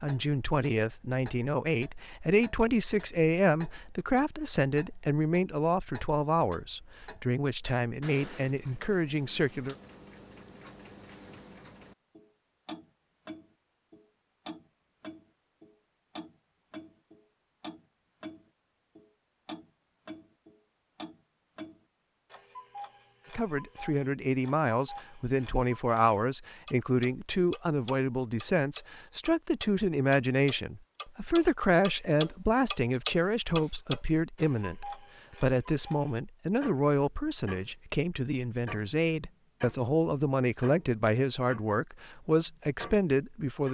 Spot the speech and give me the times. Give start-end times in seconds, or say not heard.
0.0-9.8, 23.4-43.6.